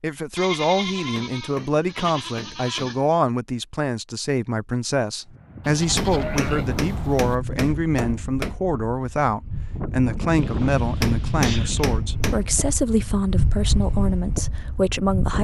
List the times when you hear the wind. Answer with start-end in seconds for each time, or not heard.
5.3-15.3.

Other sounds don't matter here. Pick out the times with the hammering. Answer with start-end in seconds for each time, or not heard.
0.8-3.0, 5.8-8.6, 10.8-12.6.